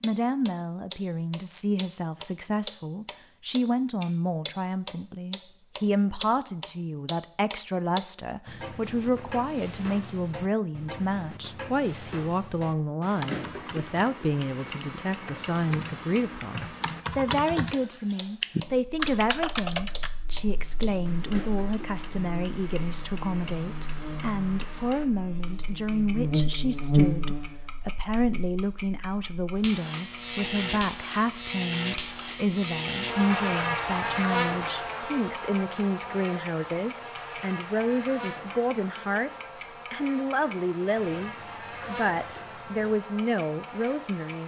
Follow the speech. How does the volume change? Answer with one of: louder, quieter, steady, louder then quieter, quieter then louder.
steady.